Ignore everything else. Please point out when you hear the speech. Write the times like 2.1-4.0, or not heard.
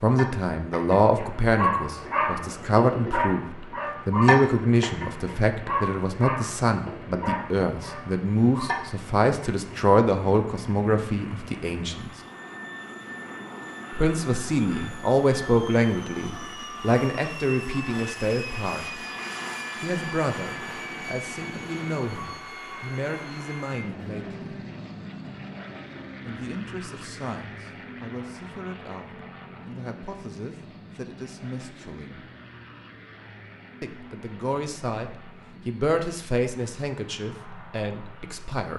0.0-12.1, 13.9-19.0, 19.8-24.4, 26.2-32.2, 33.8-38.7.